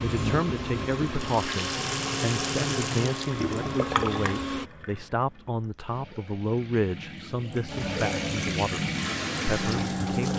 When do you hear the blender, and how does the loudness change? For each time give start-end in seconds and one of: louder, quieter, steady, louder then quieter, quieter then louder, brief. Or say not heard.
0.0-4.7 steady
7.7-10.1 brief.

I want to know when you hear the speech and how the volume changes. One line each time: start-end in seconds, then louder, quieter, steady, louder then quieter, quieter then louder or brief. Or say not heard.
0.0-10.3 steady.